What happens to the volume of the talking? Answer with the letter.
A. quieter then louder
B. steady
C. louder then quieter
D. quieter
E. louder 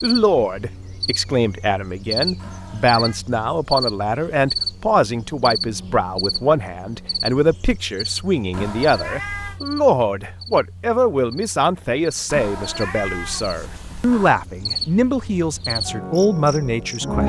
B.